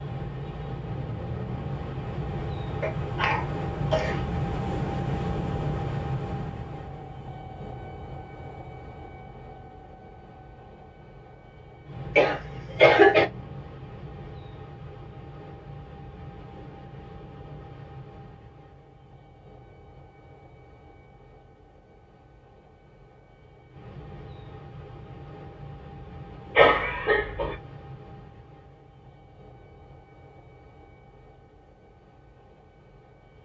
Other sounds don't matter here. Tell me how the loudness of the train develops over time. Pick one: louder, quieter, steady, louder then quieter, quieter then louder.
quieter.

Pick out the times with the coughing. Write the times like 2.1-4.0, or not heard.
2.8-4.2, 12.2-13.2, 26.6-27.6.